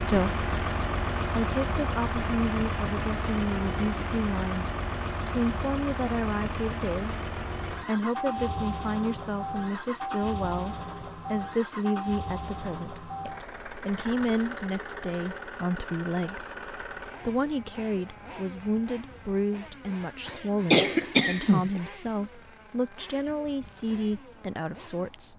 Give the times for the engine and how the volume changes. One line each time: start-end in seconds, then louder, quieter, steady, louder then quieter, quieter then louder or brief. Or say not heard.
0.0-25.3 quieter.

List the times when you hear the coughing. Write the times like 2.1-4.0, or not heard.
20.2-21.8.